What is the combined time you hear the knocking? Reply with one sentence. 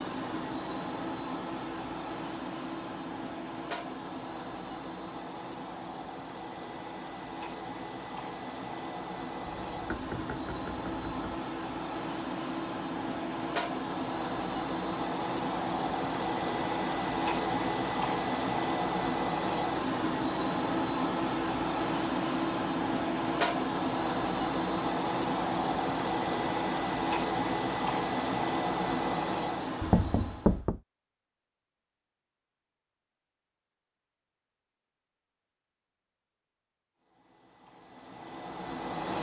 The knocking can be heard for 3 seconds in total.